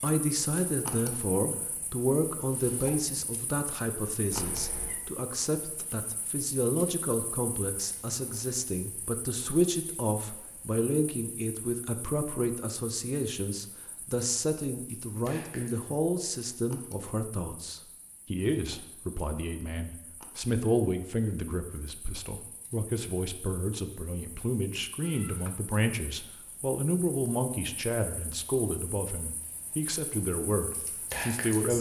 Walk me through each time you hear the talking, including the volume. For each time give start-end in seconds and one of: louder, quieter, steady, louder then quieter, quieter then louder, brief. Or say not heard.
0.0-31.7 steady.